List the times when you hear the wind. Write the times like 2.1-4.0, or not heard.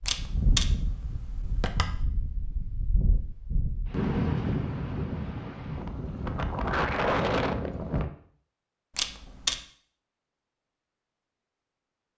0.0-8.1.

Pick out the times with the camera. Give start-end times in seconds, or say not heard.
0.1-2.0, 8.9-9.6.